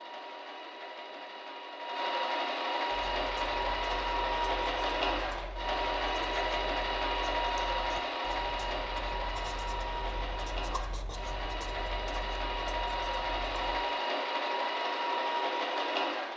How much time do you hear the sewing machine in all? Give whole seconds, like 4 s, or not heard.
16 s.